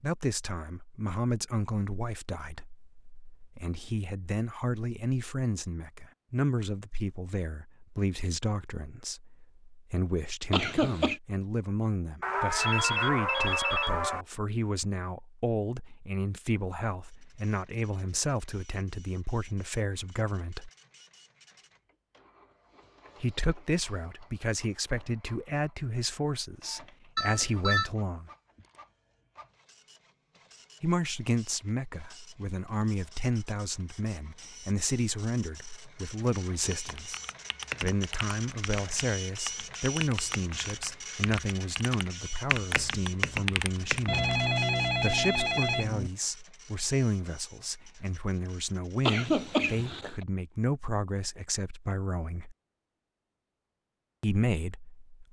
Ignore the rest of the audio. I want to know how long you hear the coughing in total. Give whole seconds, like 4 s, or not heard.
2 s.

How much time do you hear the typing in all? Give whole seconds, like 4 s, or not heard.
8 s.